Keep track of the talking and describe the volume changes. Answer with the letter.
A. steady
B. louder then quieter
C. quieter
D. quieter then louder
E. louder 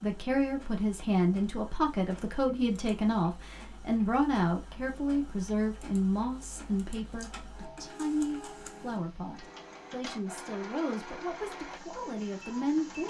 C.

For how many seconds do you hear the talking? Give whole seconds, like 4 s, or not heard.
13 s.